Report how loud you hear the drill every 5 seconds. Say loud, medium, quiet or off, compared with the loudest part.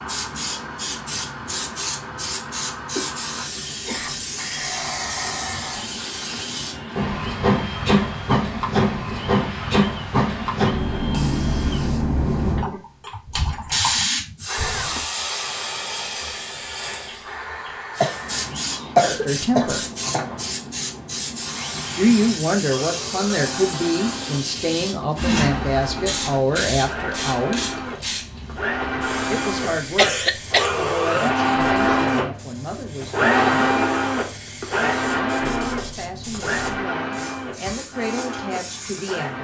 quiet, quiet, quiet, quiet, quiet, medium, loud, medium.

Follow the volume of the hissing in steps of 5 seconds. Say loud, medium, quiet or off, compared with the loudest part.
medium, loud, loud, medium, medium, medium, quiet, quiet.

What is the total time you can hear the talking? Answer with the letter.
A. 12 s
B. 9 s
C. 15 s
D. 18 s
C.